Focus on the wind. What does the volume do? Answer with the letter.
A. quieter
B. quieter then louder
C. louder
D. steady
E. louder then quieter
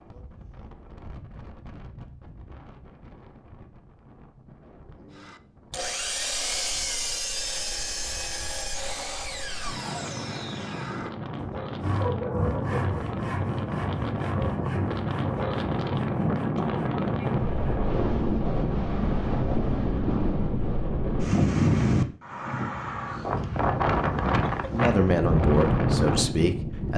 C.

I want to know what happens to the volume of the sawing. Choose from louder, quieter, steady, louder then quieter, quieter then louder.
quieter.